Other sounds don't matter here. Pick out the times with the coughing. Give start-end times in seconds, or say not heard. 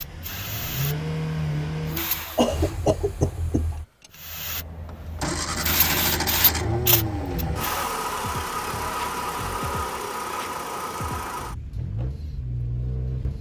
2.4-3.6.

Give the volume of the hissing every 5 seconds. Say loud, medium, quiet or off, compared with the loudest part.
medium, loud, off.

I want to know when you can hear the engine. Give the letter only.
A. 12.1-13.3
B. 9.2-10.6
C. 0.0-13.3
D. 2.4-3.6
C.